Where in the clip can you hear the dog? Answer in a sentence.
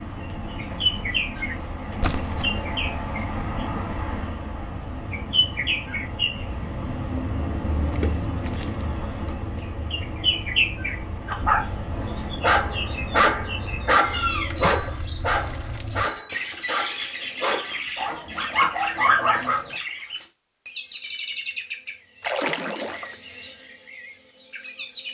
The dog can be heard from 11.2 to 19.8 s.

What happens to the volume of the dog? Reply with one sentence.
The volume of the dog goes down, then up.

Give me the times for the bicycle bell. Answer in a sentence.
You can hear the bicycle bell from 14.6 to 15.2 s and from 16.0 to 16.5 s.